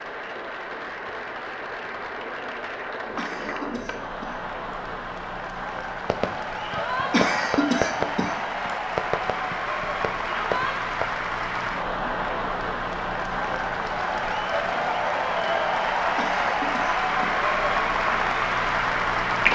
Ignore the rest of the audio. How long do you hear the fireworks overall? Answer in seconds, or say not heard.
5 s.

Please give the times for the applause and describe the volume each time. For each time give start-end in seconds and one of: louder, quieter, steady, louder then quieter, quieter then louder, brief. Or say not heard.
0.0-19.4 louder.